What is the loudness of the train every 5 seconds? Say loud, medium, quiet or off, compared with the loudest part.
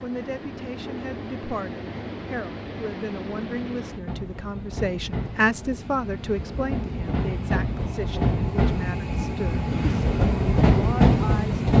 quiet, medium, loud.